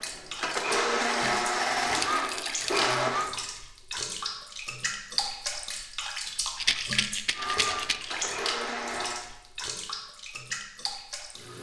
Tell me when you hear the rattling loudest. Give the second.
7 s.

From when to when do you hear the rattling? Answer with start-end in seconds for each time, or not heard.
2.0-2.9, 6.5-8.2.